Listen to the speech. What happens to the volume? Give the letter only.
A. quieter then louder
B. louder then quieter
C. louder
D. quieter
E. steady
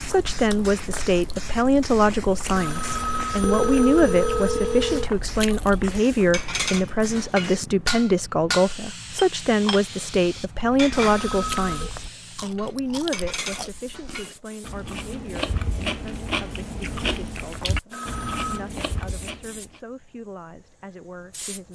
D.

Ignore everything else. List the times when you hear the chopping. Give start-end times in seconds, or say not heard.
not heard.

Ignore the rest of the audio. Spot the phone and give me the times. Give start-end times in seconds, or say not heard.
2.5-5.1, 11.1-11.9, 17.9-18.6.